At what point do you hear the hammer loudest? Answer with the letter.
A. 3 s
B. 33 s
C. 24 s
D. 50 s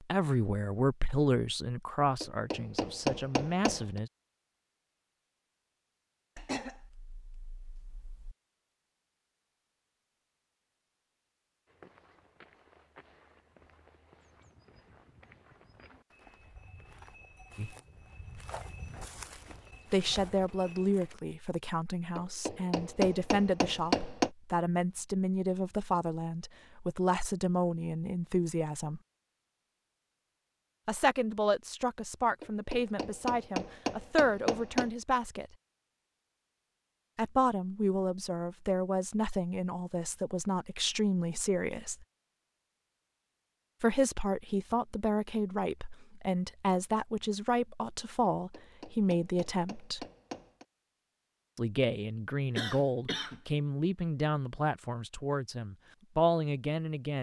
C.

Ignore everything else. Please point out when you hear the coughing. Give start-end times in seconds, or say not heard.
6.3-8.3, 52.5-53.4.